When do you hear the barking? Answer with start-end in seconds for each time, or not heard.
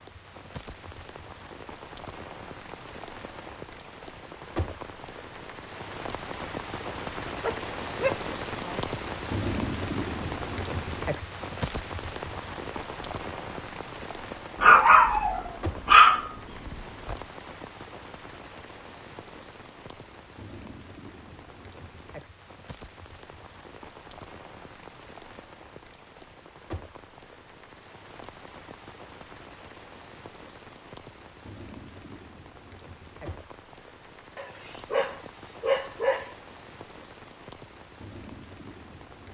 7.4-8.8, 14.6-17.1, 34.4-36.4.